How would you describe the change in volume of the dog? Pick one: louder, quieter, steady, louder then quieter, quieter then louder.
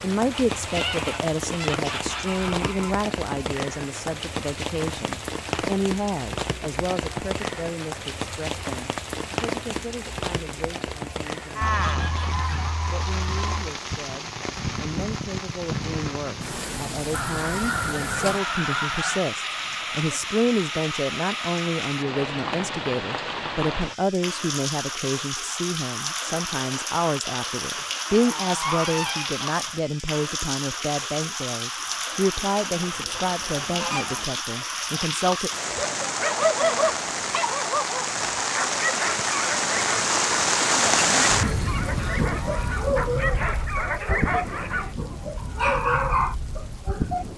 quieter then louder.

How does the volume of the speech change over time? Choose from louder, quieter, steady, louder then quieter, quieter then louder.
quieter then louder.